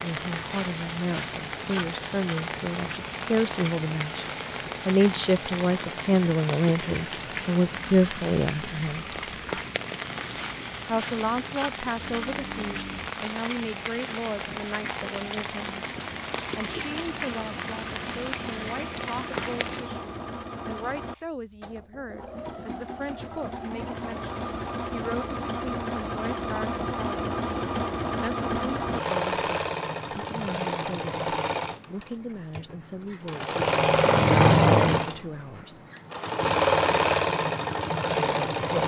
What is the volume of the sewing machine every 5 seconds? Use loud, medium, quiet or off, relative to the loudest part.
quiet, quiet, quiet, quiet, quiet, medium, loud, loud.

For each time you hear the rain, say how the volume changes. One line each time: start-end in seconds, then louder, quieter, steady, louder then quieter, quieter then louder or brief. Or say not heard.
0.0-20.2 steady.